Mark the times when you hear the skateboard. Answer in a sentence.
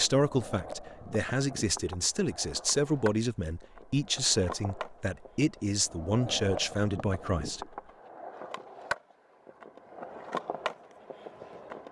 You can hear the skateboard from 0.0 to 11.8 s.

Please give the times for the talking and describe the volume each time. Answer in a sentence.
The talking can be heard from 0.0 to 7.7 s, at a steady volume.